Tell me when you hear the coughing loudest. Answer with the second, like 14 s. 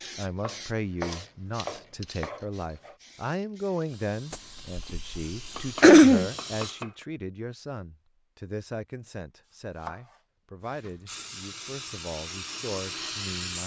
6 s.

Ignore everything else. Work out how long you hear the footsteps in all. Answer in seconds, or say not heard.
not heard.